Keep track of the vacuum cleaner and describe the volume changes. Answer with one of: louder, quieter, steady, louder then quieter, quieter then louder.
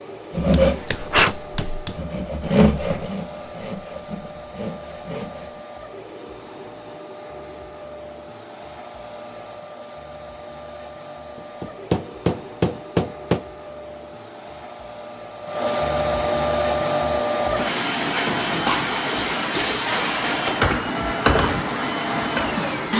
louder.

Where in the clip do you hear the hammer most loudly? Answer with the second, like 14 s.
13 s.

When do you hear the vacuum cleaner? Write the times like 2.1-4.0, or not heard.
0.0-22.9.